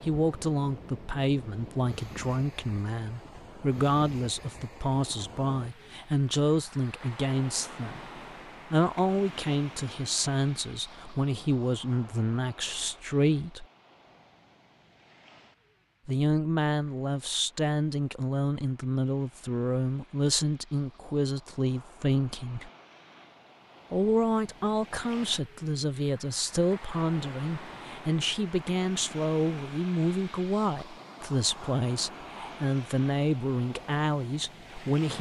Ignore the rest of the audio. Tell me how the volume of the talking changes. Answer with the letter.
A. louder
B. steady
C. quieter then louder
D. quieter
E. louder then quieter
B.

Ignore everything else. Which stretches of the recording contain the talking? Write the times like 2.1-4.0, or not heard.
0.0-13.7, 16.1-22.7, 23.9-35.1.